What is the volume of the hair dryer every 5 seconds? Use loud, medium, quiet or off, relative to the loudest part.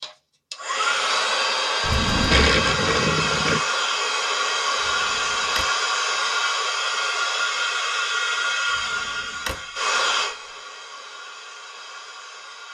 loud, loud, medium.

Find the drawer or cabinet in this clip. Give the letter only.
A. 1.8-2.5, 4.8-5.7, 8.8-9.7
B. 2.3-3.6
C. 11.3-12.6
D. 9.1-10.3
A.